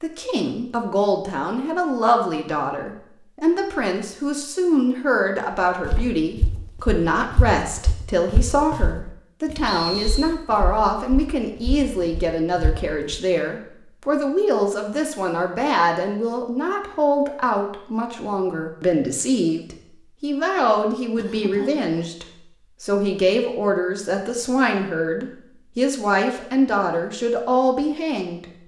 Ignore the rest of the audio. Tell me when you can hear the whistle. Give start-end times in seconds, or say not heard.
9.7-10.3.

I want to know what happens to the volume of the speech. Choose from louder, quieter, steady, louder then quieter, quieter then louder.
steady.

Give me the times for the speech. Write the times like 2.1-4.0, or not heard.
0.0-28.4.